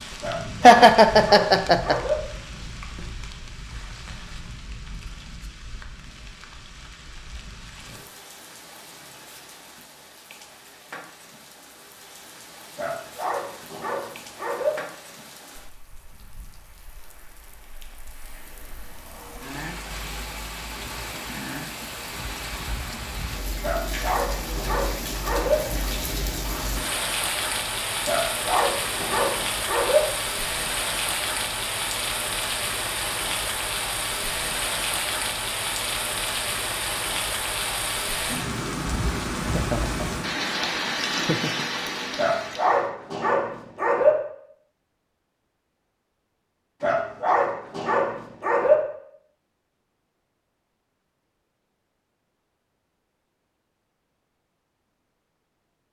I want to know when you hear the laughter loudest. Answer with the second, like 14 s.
1 s.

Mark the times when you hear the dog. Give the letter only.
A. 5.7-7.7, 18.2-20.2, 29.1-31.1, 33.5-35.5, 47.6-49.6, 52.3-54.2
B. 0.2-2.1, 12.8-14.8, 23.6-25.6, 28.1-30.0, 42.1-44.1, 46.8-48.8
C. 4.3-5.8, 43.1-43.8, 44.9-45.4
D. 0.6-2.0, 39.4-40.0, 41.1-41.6
B.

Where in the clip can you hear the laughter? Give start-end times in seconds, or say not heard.
0.6-2.0, 39.4-40.0, 41.1-41.6.